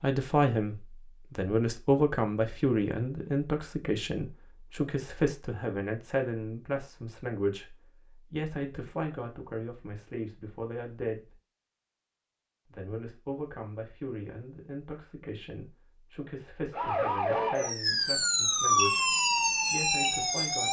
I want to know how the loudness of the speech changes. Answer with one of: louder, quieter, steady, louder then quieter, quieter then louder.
quieter.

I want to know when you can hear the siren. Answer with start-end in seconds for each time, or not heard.
16.7-20.6.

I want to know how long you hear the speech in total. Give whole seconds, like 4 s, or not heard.
19 s.